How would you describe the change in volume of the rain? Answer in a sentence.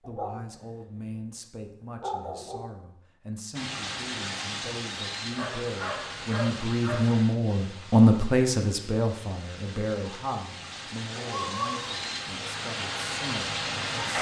The loudness of the rain goes down, then up.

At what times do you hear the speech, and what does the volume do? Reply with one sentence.
You can hear the speech from 0.1 to 14.1 s, getting louder then quieter.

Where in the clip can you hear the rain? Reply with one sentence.
The rain can be heard from 3.5 to 14.1 s.